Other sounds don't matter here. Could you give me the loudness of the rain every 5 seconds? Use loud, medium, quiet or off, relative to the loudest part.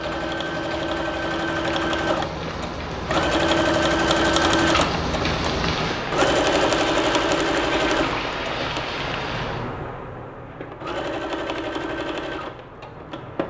medium, loud, off.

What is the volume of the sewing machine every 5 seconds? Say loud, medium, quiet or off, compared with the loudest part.
loud, loud, medium.